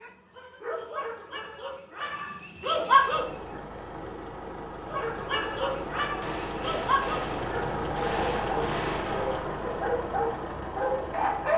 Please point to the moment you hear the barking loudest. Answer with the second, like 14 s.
3 s.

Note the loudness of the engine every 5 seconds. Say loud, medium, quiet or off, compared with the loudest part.
medium, loud, loud.